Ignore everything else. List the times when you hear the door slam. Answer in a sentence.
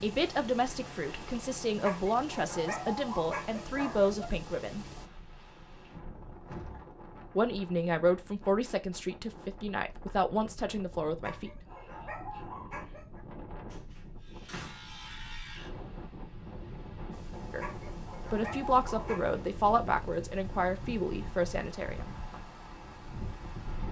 You can hear the door slam from 5.9 to 6.9 s and from 13.7 to 15.1 s.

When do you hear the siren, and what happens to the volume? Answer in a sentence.
The siren can't be heard in this clip.